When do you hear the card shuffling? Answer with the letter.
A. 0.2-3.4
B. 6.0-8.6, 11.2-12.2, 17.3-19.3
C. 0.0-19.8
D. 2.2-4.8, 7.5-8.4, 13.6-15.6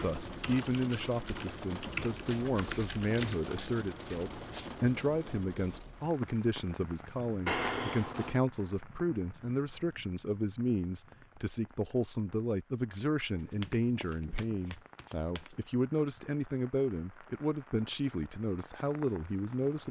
D.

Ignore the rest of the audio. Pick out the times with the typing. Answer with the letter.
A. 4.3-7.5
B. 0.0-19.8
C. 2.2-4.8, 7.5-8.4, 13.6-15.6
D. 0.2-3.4
D.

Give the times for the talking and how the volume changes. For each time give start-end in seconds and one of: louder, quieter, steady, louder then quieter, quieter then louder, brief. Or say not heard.
0.0-19.8 steady.